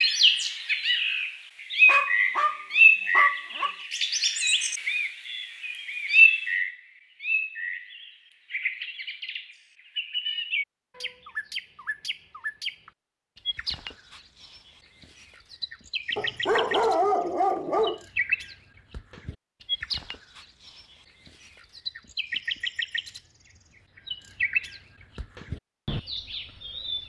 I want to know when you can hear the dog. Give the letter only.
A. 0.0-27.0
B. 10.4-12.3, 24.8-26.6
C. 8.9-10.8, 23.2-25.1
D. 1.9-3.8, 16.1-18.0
D.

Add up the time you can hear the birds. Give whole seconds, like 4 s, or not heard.
27 s.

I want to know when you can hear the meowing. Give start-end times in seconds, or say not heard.
not heard.